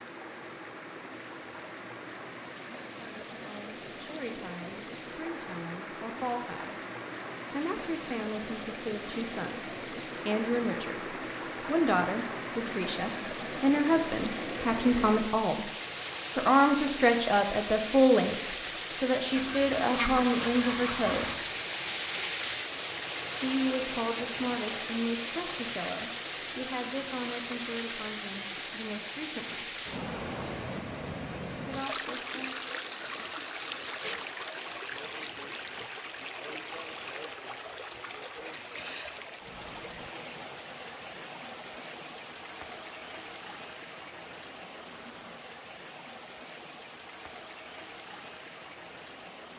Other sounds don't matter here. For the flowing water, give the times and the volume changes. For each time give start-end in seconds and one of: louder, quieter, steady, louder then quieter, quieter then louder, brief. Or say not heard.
0.0-49.5 louder then quieter.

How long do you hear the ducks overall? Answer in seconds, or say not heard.
2 s.